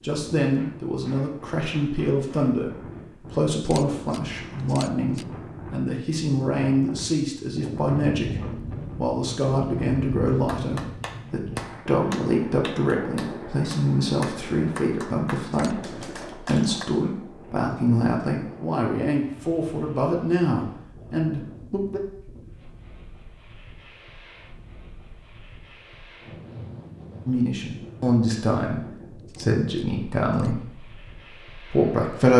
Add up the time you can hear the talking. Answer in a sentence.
The talking can be heard for 27 seconds in total.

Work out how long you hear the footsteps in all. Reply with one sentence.
The footsteps can't be heard in this clip.